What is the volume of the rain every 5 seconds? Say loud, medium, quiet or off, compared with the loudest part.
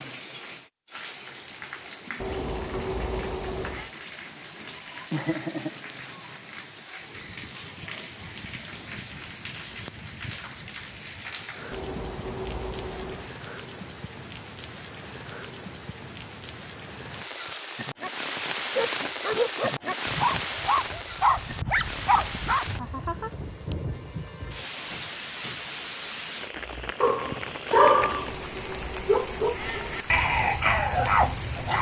medium, medium, medium, loud, loud, loud, medium.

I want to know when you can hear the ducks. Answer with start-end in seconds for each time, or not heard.
2.2-3.9, 11.7-13.3, 28.0-30.1.